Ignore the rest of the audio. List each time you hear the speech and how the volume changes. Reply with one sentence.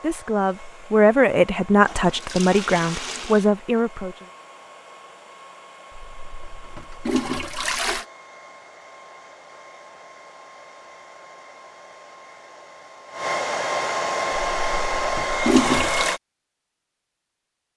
The speech can be heard from 0.0 to 4.2 s, at a steady volume.